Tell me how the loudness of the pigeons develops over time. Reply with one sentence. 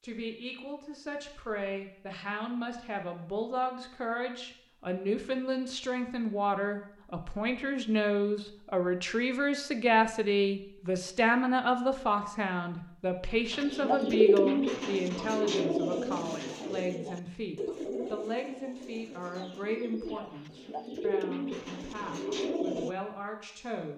The volume of the pigeons goes down, then up.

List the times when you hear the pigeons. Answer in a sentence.
The pigeons can be heard from 13.5 to 22.9 s.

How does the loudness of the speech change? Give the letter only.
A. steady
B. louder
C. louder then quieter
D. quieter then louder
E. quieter
C.